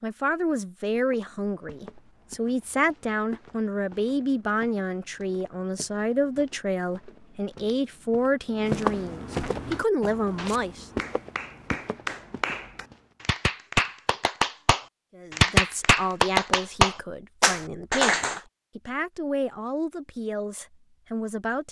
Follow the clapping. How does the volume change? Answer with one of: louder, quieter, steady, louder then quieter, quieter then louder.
louder.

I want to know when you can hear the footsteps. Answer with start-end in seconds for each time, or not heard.
0.9-13.1.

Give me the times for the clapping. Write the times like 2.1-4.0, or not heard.
9.5-18.4.